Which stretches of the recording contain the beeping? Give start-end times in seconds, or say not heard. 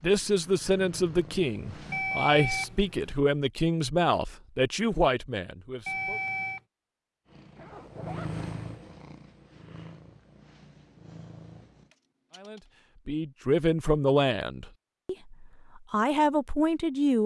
1.9-3.2, 5.8-6.6, 11.9-12.6.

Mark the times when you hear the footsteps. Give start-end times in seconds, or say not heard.
not heard.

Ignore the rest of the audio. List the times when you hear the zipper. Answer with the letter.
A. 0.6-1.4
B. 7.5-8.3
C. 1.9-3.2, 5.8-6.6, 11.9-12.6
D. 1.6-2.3
B.